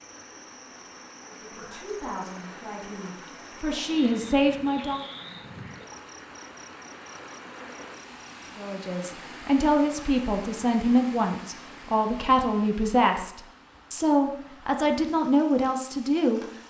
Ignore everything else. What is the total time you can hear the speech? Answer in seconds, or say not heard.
12 s.